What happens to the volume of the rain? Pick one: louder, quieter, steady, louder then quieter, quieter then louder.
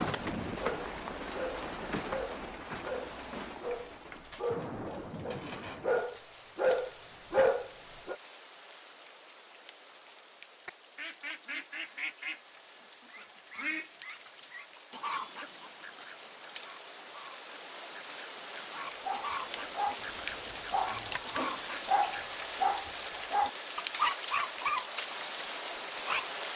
quieter then louder.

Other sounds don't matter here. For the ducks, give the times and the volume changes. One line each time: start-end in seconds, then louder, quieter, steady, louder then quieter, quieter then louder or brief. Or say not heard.
10.7-22.2 quieter then louder.